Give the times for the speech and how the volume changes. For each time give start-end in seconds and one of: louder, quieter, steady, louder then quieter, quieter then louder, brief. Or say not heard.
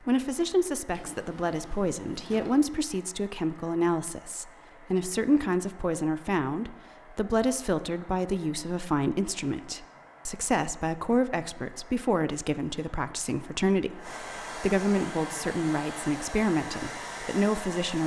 0.1-18.0 steady.